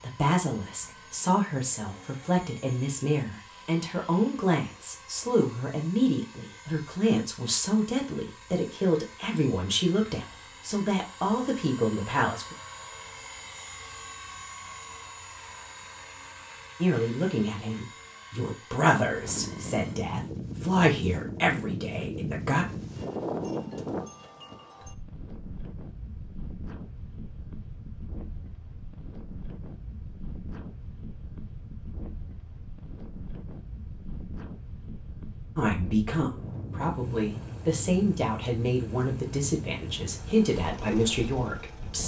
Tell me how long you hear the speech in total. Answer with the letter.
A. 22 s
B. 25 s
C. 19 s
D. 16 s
B.